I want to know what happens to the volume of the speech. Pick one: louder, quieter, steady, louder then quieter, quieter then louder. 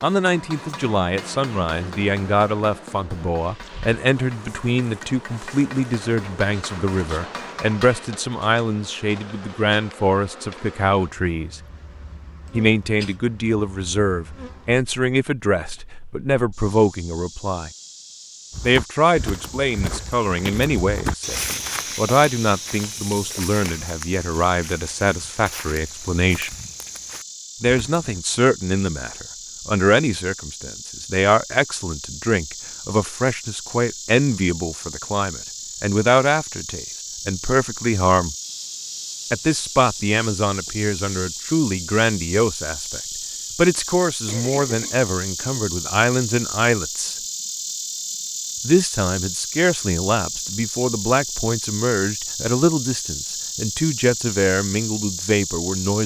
steady.